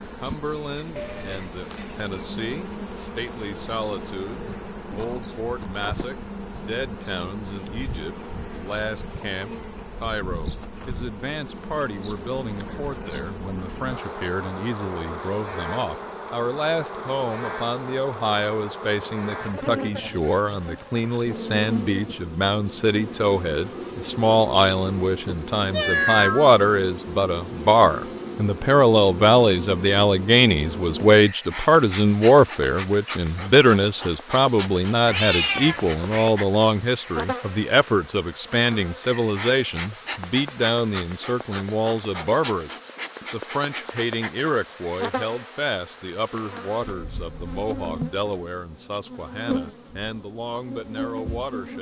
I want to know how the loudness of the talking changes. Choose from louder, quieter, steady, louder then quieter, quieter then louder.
louder then quieter.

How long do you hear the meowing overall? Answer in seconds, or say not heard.
3 s.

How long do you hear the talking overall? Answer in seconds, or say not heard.
52 s.